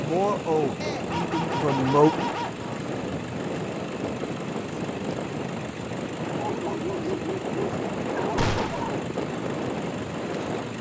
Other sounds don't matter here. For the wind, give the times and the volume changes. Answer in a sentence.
The wind can be heard from 0.0 to 10.7 s, at a steady volume.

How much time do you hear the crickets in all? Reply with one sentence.
You can't hear the crickets here.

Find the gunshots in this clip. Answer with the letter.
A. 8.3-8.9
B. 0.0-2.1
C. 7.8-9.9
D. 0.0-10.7
A.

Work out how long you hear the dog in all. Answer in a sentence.
The dog can be heard for 5 seconds in total.